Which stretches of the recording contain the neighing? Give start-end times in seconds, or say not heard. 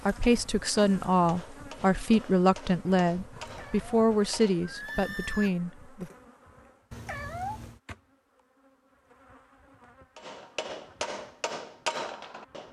4.6-5.5.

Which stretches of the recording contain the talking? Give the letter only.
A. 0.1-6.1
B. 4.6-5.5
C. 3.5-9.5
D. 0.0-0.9
A.